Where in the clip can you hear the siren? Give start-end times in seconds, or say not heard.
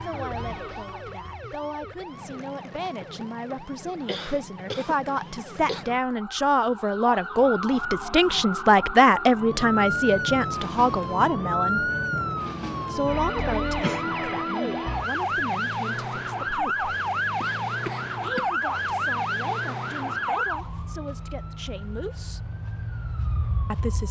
0.0-24.0.